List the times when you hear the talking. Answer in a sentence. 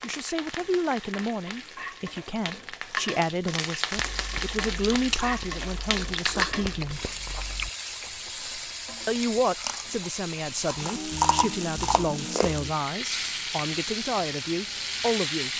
The talking can be heard from 0.0 to 7.0 s and from 9.1 to 15.5 s.